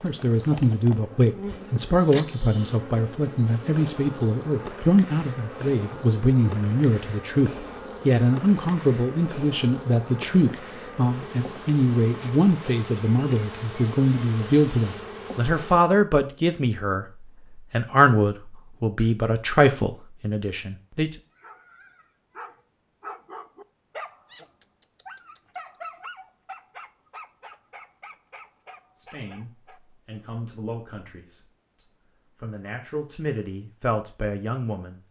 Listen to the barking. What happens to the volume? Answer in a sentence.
The loudness of the barking goes down.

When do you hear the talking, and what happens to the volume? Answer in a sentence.
You can hear the talking from 0.0 to 21.1 s, at a steady volume; and from 28.9 to 35.0 s, getting louder.